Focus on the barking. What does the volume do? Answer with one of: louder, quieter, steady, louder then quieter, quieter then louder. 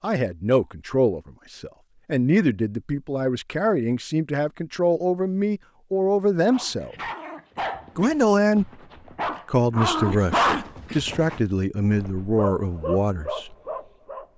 louder then quieter.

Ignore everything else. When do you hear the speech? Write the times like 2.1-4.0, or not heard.
0.0-7.0, 8.0-8.7, 9.4-13.6.